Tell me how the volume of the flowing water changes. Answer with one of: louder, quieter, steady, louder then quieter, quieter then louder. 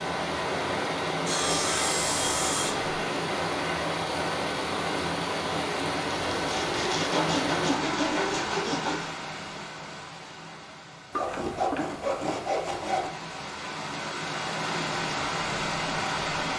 quieter then louder.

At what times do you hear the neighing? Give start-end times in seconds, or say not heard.
not heard.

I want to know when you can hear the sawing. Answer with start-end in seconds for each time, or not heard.
1.2-2.9, 6.3-9.1, 11.1-13.1.